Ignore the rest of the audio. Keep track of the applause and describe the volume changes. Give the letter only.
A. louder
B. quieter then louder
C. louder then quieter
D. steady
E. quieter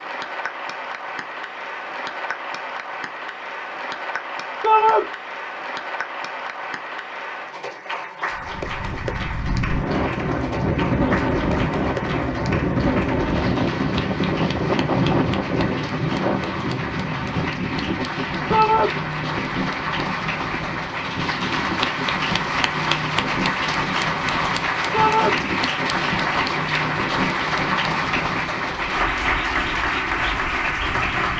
A.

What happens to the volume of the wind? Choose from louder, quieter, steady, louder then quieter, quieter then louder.
quieter.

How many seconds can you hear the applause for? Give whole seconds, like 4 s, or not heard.
31 s.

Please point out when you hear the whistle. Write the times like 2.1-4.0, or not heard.
not heard.